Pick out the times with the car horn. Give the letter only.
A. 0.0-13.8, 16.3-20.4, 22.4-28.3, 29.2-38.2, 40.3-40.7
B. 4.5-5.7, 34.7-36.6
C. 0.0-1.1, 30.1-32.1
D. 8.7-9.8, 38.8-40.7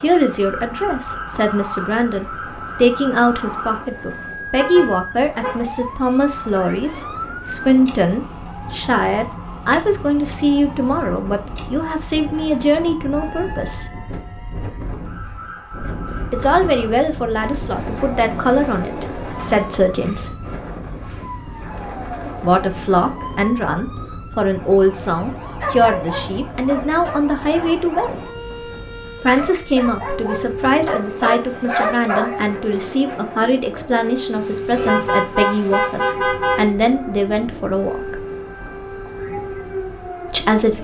B.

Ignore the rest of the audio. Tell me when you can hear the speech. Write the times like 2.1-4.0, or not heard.
0.0-13.8, 16.3-20.4, 22.4-28.3, 29.2-38.2, 40.3-40.7.